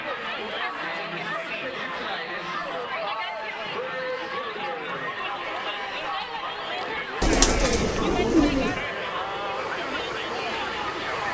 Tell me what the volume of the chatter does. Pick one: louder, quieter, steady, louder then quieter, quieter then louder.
steady.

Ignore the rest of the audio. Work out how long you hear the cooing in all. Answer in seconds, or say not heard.
2 s.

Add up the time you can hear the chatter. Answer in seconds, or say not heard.
11 s.